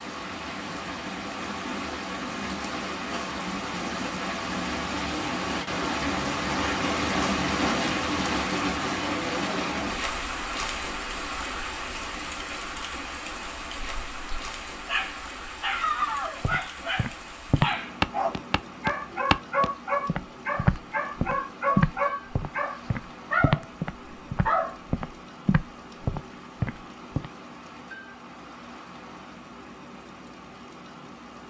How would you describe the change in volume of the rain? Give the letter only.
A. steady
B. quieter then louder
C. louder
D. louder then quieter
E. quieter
E.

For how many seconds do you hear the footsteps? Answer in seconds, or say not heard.
11 s.